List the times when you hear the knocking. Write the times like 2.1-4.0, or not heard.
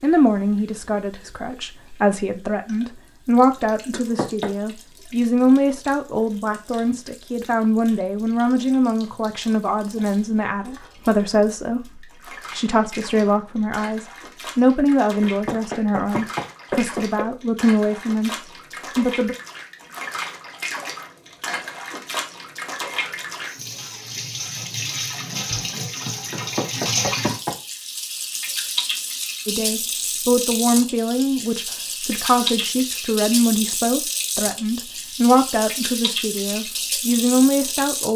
3.9-4.5, 15.2-17.2, 26.3-27.6.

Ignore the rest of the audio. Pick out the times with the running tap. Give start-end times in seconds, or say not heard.
0.0-38.1.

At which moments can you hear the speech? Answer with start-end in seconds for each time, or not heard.
0.0-19.4, 29.4-38.1.